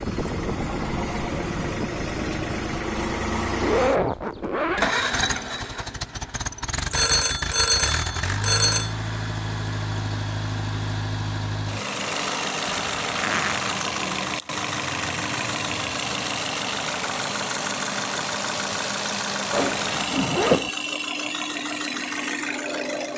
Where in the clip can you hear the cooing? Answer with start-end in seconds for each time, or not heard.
not heard.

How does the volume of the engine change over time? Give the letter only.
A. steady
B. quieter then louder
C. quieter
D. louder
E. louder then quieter
A.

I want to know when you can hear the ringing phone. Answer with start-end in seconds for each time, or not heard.
6.9-8.9.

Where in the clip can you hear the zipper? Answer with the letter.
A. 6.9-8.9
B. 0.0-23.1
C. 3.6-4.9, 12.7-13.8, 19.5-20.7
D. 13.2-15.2
C.